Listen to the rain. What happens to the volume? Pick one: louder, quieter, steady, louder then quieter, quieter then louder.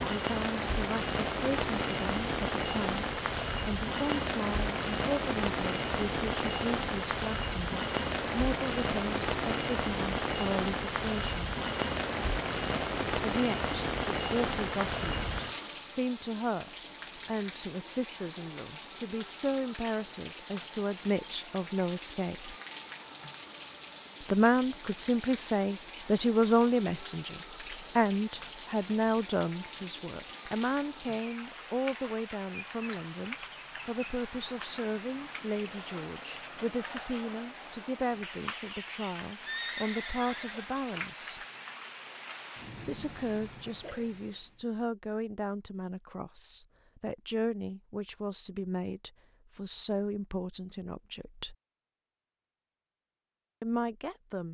quieter.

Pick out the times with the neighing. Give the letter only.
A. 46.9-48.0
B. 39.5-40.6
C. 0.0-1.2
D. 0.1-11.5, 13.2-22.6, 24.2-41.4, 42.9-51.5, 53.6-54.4
B.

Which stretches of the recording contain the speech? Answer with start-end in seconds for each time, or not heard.
0.1-11.5, 13.2-22.6, 24.2-41.4, 42.9-51.5, 53.6-54.4.